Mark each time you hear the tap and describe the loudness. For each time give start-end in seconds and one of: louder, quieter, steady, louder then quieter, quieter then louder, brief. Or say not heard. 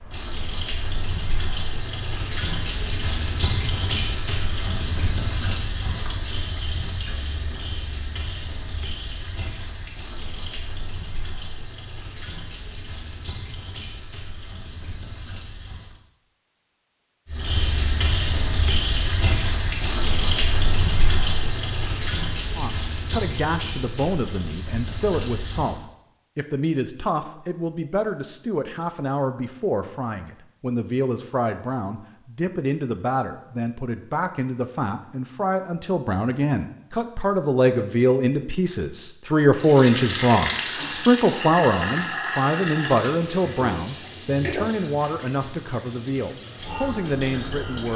0.0-16.0 quieter
17.2-25.8 quieter
39.6-47.9 quieter.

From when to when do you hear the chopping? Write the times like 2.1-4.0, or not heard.
not heard.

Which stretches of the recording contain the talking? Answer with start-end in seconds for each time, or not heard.
22.6-47.9.